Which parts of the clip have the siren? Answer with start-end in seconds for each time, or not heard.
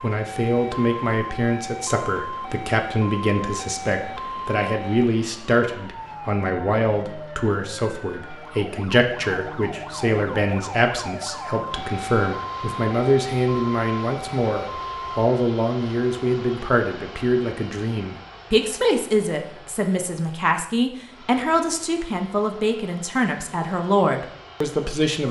0.0-15.3.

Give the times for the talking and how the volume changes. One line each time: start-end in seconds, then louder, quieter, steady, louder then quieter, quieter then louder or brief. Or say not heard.
0.0-25.2 steady.